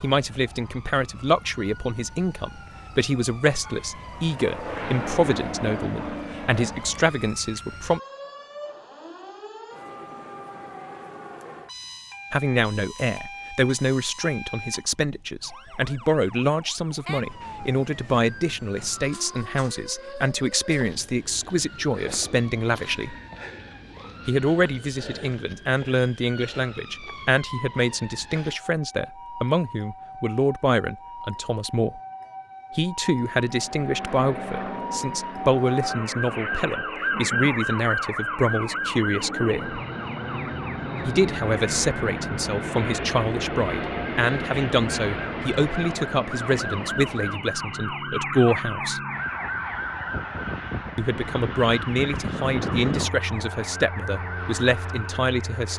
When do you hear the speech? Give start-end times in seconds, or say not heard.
0.0-8.0, 12.3-23.1, 24.2-32.0, 32.8-39.8, 41.0-49.0, 51.0-55.7.